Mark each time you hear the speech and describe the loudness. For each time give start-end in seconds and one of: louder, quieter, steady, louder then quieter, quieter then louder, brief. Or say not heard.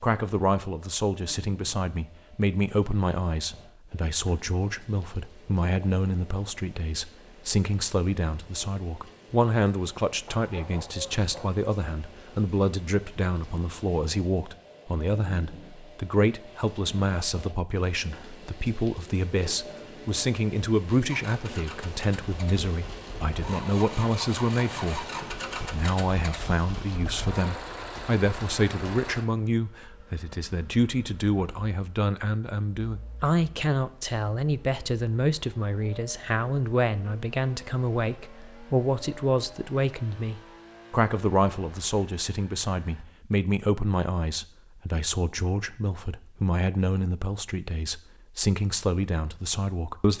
0.0-50.1 steady.